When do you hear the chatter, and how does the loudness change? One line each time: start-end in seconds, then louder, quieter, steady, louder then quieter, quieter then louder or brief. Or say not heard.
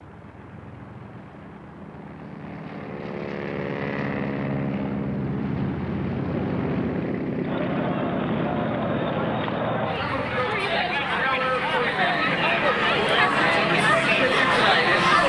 7.4-15.2 louder.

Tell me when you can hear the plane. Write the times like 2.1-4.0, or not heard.
0.0-15.2.